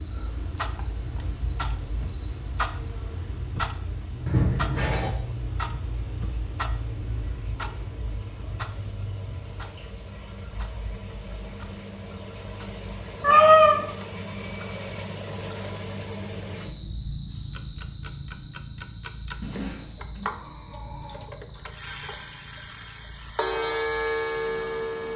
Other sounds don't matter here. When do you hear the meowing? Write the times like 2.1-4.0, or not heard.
4.2-5.1, 13.2-13.8, 19.4-21.2.